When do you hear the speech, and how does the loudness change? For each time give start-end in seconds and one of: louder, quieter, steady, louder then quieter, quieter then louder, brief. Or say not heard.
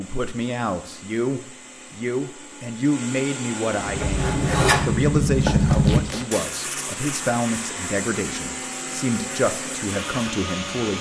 0.0-10.9 steady.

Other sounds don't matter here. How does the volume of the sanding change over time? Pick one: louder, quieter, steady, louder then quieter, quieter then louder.
quieter.